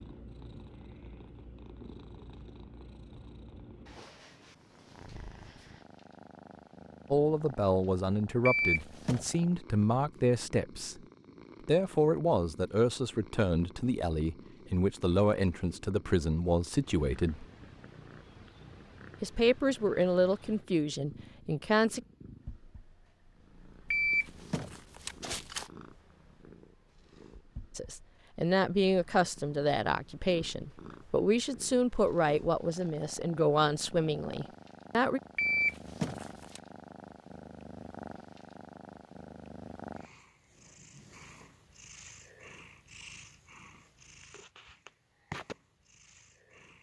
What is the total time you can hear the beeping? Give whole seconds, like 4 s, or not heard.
4 s.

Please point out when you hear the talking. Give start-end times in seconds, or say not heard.
7.1-11.0, 11.7-17.4, 19.2-22.0, 27.8-35.2.